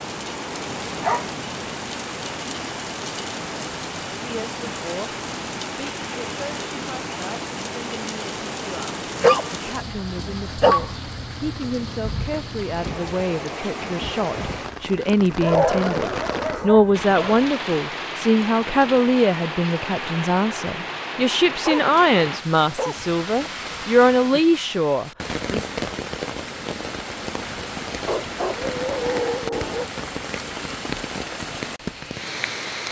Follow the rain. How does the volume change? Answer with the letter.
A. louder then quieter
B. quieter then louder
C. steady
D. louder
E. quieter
C.